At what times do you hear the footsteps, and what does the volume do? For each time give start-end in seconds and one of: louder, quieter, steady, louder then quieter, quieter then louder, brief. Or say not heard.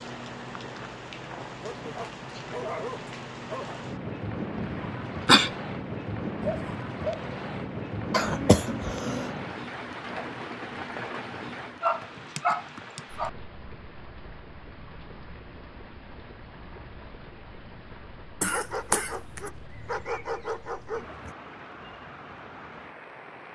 not heard.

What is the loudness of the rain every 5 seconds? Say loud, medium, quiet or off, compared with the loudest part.
loud, loud, medium, quiet, medium.